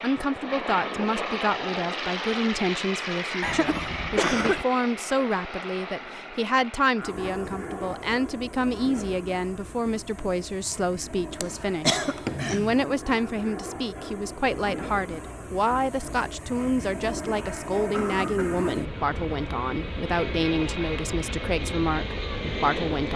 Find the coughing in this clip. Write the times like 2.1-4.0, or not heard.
3.4-4.7, 11.4-12.8, 17.9-18.7.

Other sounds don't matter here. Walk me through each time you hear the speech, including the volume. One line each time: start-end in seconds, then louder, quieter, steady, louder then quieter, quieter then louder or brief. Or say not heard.
0.0-23.1 steady.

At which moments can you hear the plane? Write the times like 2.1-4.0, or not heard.
0.0-23.1.